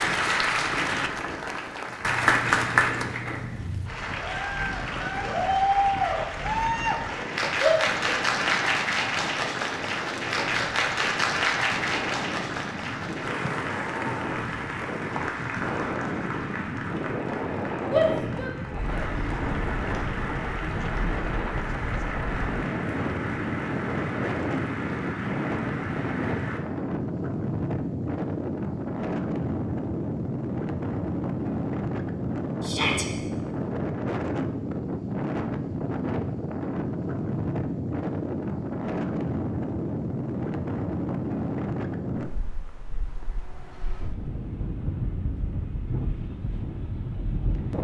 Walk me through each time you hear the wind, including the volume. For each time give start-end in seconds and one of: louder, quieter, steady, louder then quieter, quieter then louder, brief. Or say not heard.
0.0-47.7 louder.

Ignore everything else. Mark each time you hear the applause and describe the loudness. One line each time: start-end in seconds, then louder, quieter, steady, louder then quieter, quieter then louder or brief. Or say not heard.
0.0-26.6 quieter.